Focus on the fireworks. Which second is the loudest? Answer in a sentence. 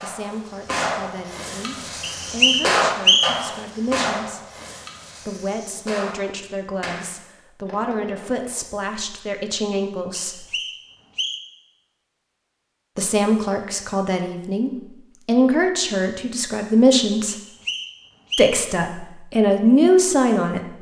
The volume of the fireworks peaks at 3 seconds.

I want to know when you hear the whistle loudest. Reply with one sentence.
The loudest moment of the whistle is at 3 seconds.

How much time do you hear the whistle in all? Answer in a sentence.
You can hear the whistle for 4 seconds altogether.